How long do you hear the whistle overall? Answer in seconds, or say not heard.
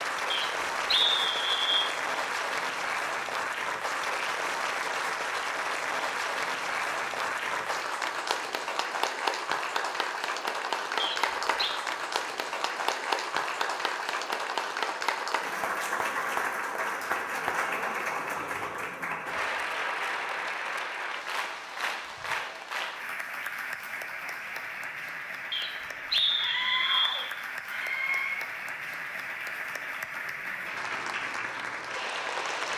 4 s.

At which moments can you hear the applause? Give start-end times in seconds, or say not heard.
0.0-32.7.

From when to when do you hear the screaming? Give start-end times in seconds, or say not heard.
26.4-28.4.